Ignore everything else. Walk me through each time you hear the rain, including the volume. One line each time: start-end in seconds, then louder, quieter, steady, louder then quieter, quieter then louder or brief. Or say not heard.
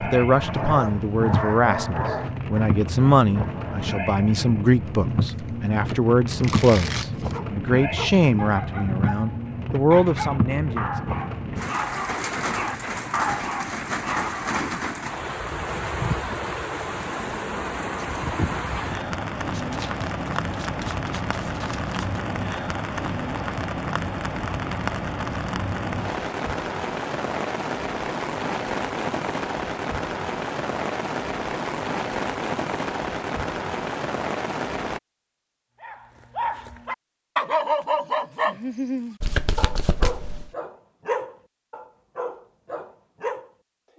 0.0-35.0 steady.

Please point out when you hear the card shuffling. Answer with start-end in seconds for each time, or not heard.
5.2-7.4, 19.5-22.2, 39.2-40.5.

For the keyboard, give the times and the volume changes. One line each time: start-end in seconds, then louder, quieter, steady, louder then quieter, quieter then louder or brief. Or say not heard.
not heard.